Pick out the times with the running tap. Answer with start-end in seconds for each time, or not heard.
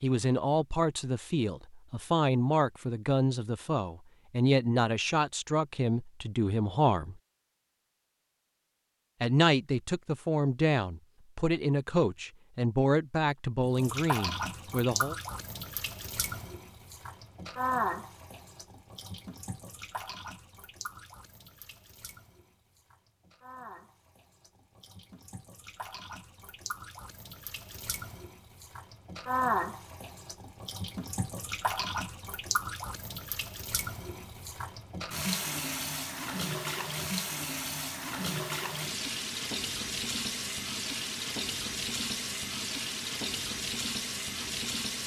13.7-45.0.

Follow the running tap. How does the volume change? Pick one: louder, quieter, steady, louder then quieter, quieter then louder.
quieter then louder.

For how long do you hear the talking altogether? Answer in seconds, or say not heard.
13 s.